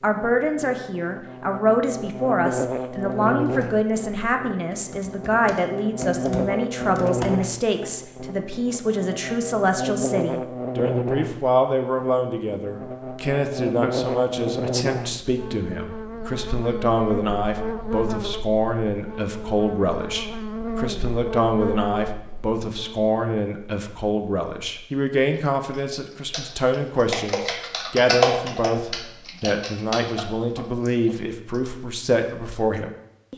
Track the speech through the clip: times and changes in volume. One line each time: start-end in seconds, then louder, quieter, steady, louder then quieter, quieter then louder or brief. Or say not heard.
0.0-33.3 steady.